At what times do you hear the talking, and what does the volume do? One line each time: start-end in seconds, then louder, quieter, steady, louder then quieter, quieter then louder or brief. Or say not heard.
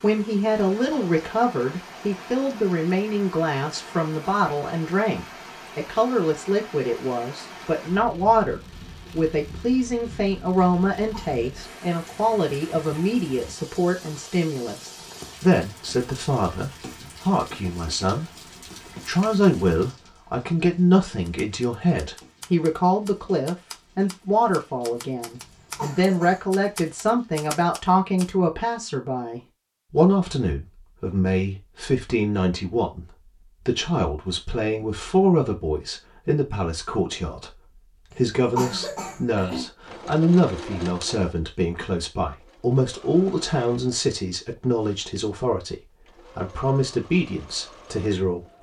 0.0-48.5 steady.